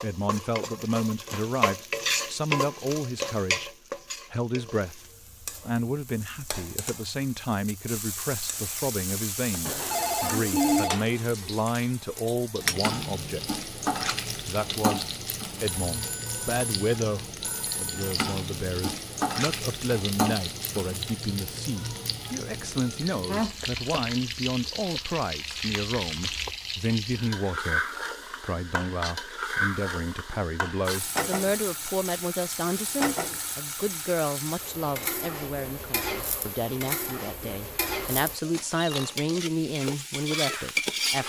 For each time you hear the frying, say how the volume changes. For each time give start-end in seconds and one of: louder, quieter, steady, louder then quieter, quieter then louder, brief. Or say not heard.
0.0-41.2 steady.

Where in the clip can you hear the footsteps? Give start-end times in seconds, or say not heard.
not heard.